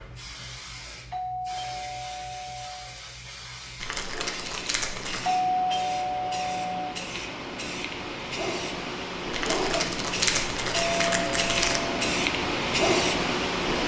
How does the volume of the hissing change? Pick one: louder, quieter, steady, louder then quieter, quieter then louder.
louder.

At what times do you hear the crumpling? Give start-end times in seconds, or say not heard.
3.8-5.3, 9.3-11.8.